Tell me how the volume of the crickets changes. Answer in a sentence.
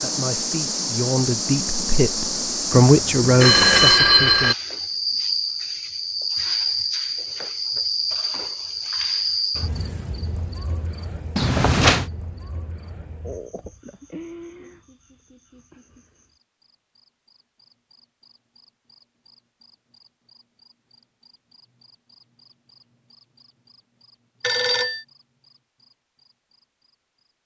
The loudness of the crickets goes down.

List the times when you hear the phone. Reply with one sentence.
The phone can be heard from 2.7 to 4.5 s, from 11.3 to 12.1 s and from 24.4 to 25.0 s.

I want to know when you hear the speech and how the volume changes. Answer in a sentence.
You can hear the speech from 0.0 to 4.5 s, getting louder then quieter.